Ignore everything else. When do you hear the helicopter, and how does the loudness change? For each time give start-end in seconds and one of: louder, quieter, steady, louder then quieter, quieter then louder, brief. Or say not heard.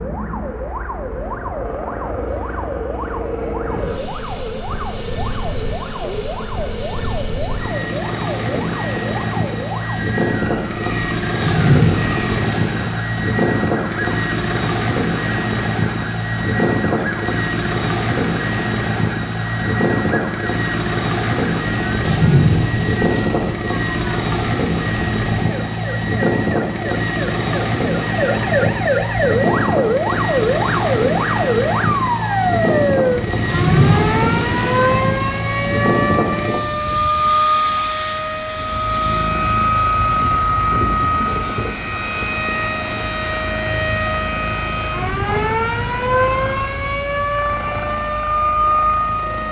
0.0-49.4 louder then quieter.